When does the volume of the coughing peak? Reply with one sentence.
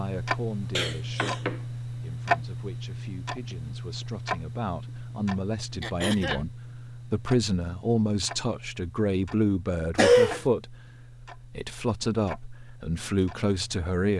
The volume of the coughing peaks at 10 seconds.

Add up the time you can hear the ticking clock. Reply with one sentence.
You can hear the ticking clock for 14 seconds altogether.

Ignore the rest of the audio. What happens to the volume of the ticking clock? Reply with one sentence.
The loudness of the ticking clock goes down.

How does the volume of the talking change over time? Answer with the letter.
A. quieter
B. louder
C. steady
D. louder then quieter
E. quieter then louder
B.